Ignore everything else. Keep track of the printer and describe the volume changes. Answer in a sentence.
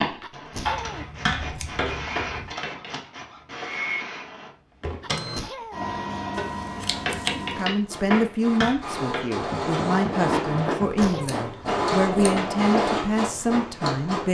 The volume of the printer goes up.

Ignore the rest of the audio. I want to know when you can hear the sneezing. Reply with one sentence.
You can hear the sneezing from 0.2 to 1.1 s, from 5.0 to 5.8 s and from 10.9 to 11.3 s.